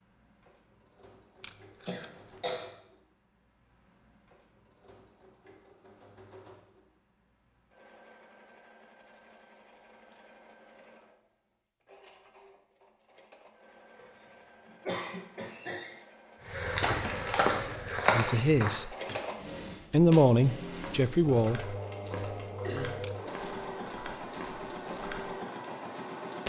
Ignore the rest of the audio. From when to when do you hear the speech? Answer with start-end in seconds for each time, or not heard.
18.1-18.9, 19.9-21.8.